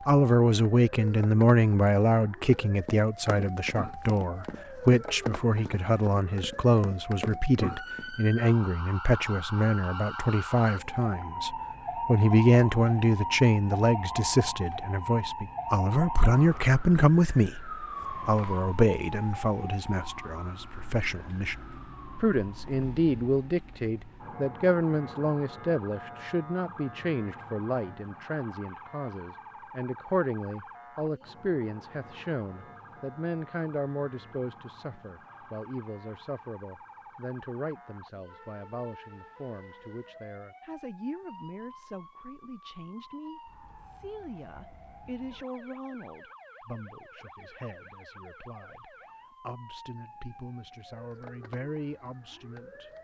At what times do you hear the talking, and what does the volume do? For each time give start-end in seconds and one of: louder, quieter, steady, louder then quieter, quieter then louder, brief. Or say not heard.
0.1-52.9 quieter.